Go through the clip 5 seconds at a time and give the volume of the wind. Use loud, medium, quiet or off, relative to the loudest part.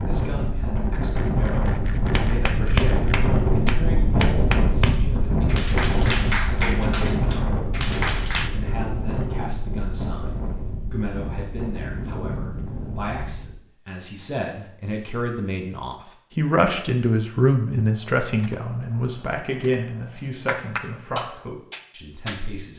loud, loud, medium, off, off.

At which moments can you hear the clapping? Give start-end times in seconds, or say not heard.
2.1-8.5, 20.4-22.4.